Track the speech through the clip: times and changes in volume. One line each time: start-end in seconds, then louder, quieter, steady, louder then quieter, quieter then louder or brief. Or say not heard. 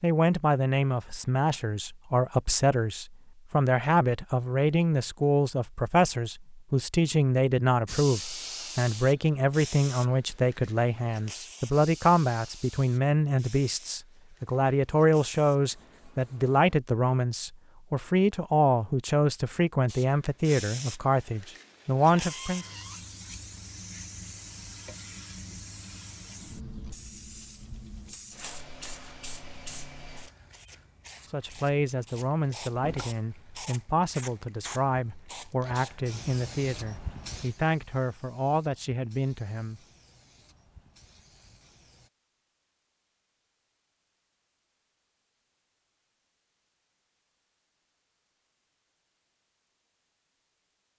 0.0-22.6 steady
31.2-39.8 steady.